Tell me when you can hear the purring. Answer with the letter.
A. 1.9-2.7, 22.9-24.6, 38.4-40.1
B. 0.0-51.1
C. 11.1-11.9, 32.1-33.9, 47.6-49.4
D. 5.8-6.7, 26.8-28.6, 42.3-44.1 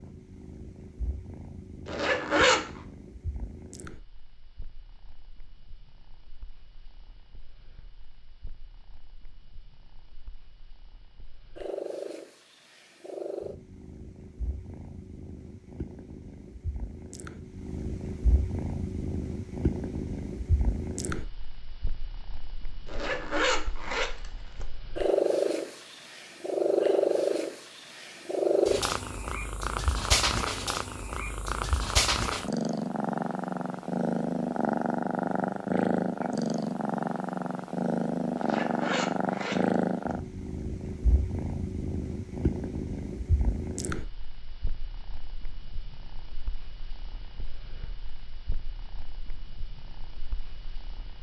B.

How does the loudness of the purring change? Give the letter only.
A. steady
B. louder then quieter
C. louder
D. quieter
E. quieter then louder
B.